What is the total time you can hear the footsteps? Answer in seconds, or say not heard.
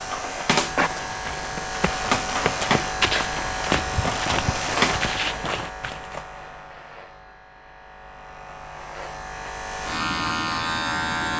6 s.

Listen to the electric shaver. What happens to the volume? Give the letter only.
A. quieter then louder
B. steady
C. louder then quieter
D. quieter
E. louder
A.